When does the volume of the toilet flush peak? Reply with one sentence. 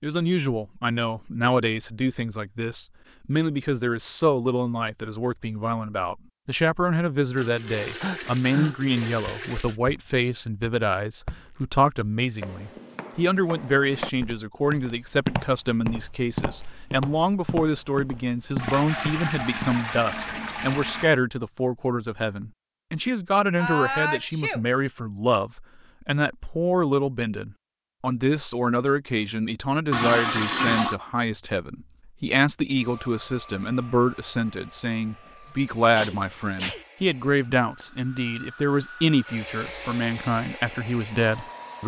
The loudest moment of the toilet flush is at 30 seconds.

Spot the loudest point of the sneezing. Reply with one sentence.
The volume of the sneezing peaks at 24 seconds.